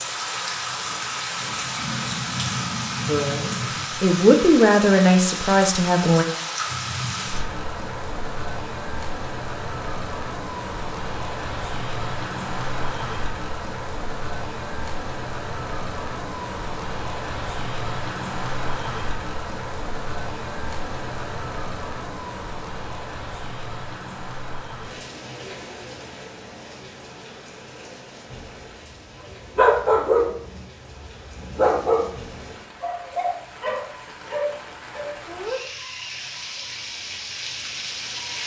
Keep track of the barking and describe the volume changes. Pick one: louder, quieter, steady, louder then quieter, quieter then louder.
quieter.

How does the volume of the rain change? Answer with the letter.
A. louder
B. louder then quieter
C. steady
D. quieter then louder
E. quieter
E.